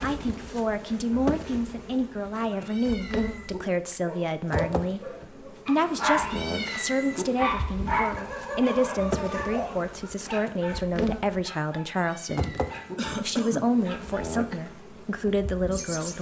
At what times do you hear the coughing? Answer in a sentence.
The coughing can be heard from 12.9 to 13.7 s.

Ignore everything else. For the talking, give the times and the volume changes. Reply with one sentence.
You can hear the talking from 0.0 to 16.1 s, at a steady volume.